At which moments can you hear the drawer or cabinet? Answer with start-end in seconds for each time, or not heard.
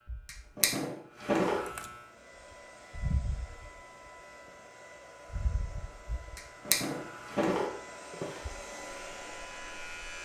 0.2-1.6, 6.3-8.4.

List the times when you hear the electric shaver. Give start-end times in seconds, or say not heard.
0.0-4.1, 5.2-10.2.